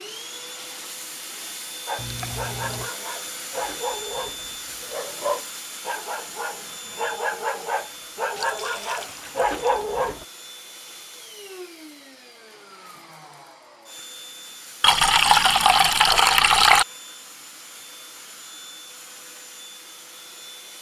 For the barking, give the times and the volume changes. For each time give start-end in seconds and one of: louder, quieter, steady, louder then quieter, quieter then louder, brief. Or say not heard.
1.9-10.2 louder.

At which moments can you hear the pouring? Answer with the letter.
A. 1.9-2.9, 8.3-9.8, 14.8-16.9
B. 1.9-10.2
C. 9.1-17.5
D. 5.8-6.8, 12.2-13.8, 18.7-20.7
A.